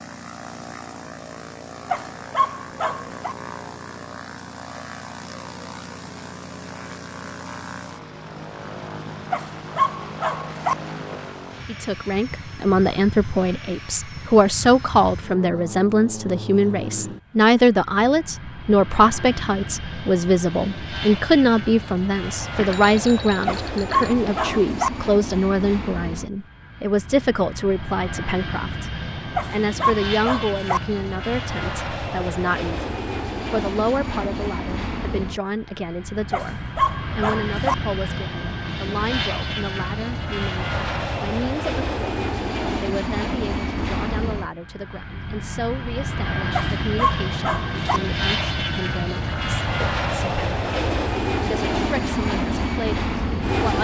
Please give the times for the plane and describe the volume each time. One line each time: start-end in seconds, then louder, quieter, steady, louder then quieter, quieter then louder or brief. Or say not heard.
0.0-53.7 louder.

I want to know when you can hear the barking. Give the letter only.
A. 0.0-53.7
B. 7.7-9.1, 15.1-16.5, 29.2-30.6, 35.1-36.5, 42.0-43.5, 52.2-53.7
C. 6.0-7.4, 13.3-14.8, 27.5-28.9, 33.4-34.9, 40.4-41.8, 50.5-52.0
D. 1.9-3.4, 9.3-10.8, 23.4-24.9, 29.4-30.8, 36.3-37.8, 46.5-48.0
D.